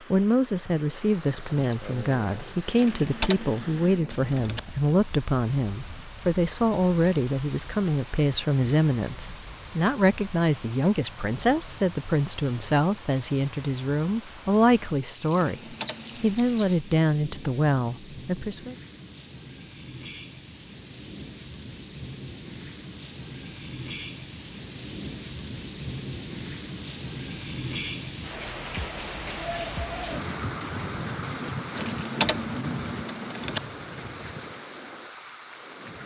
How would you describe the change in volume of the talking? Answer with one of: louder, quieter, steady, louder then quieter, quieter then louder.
steady.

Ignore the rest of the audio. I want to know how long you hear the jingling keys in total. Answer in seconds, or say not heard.
5 s.